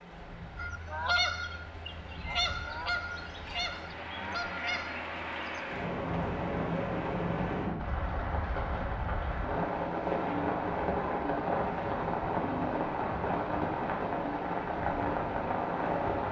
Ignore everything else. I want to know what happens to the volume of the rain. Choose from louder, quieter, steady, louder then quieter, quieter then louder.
louder.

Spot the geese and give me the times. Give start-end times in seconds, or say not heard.
0.6-5.6.